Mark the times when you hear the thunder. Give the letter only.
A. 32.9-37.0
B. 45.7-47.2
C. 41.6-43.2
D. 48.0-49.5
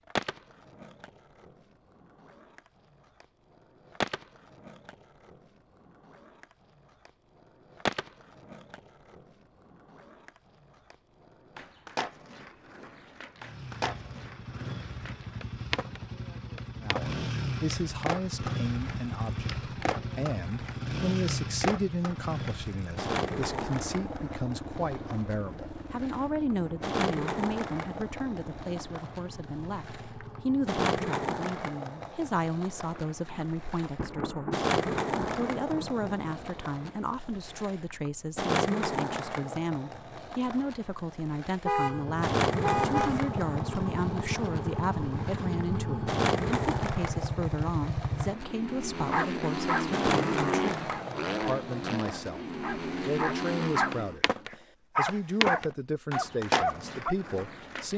A.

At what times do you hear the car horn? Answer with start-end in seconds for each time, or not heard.
41.6-43.2.